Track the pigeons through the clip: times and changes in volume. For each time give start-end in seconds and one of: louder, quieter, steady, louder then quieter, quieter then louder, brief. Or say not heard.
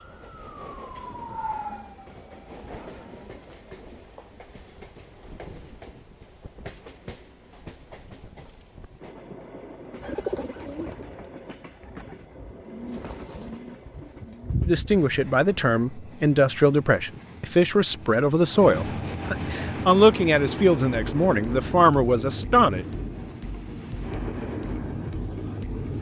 10.0-15.1 quieter then louder.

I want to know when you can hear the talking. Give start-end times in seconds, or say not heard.
14.7-22.9.